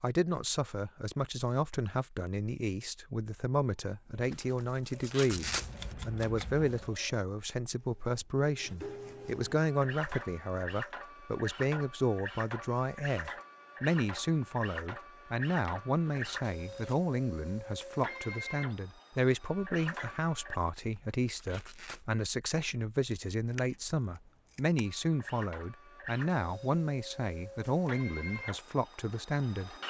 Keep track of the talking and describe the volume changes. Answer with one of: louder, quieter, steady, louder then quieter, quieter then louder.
steady.